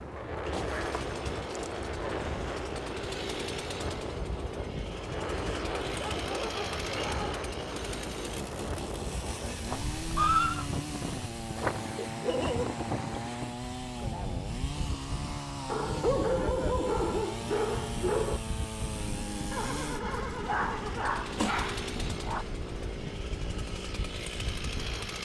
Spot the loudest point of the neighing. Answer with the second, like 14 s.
10 s.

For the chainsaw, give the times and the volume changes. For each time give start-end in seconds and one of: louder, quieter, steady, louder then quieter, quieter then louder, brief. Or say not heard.
0.0-25.2 steady.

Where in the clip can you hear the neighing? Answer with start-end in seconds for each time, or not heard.
9.7-10.7, 19.5-21.5.